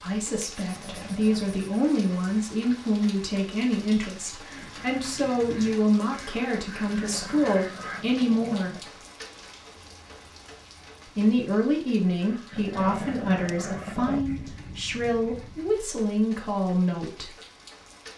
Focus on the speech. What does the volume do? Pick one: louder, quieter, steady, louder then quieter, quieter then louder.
steady.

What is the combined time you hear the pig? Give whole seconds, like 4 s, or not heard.
not heard.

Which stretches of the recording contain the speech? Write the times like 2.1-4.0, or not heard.
0.0-8.9, 11.2-17.2.